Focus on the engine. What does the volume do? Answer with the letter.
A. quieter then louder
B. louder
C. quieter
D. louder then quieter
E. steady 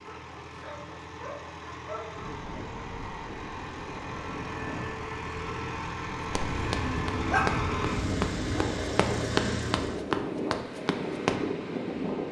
B.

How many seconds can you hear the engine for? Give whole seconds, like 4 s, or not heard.
10 s.